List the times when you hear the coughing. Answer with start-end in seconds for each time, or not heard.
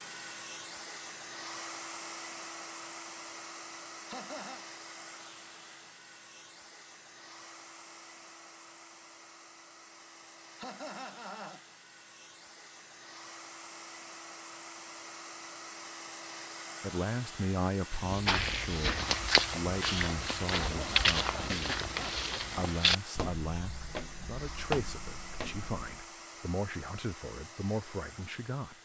4.0-4.7, 10.6-11.6, 20.6-22.1.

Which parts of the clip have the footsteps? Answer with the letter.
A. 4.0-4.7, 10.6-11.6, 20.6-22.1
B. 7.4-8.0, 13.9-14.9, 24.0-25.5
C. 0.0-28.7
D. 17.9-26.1
D.